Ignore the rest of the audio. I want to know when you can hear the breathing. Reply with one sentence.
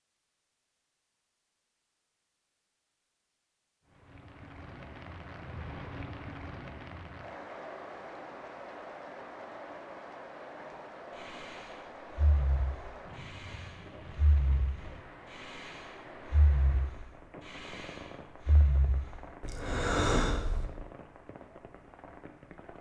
You can hear the breathing from 11.2 to 20.6 s.